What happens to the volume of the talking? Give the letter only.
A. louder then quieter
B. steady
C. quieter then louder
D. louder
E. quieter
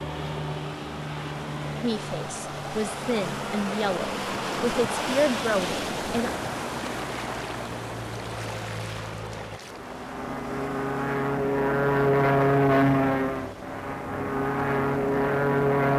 D.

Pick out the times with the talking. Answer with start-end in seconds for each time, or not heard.
1.8-6.3.